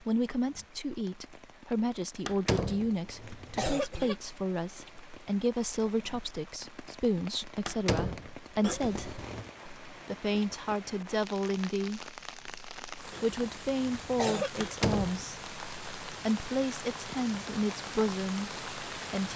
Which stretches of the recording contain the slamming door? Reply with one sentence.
The slamming door can be heard from 2.2 to 2.9 s, from 7.7 to 8.3 s and from 14.6 to 15.2 s.